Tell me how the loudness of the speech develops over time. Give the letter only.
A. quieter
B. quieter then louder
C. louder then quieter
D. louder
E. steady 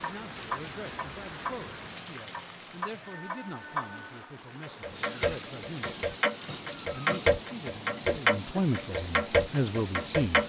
D.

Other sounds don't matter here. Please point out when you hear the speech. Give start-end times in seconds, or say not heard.
0.0-6.0, 6.9-10.4.